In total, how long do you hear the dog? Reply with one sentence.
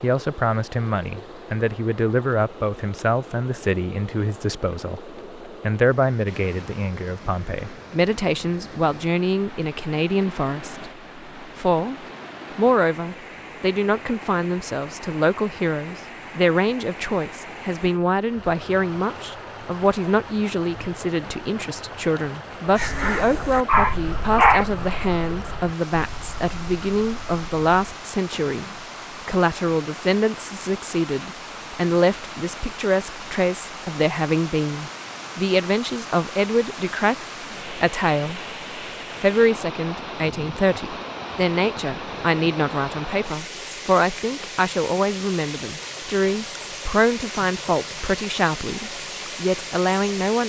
The dog can be heard for 2 seconds in total.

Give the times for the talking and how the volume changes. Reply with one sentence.
The talking can be heard from 0.0 to 38.4 s, at a steady volume; and from 39.2 to 50.4 s, at a steady volume.